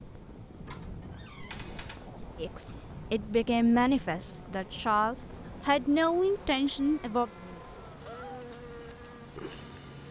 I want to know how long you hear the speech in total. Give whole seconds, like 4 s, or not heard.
5 s.